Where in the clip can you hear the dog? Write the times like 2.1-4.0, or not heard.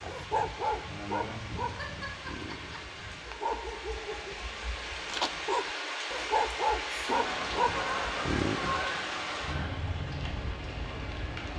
0.0-8.8.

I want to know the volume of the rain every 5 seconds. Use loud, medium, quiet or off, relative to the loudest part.
medium, loud, loud.